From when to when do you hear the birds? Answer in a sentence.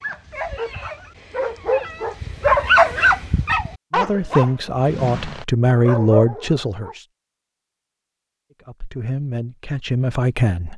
The birds can't be heard in this clip.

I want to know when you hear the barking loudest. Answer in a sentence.
The loudest moment of the barking is at 3 seconds.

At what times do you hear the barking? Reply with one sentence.
The barking can be heard from 0.0 to 7.0 s.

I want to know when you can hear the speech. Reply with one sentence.
The speech can be heard from 4.0 to 7.0 s and from 8.7 to 10.7 s.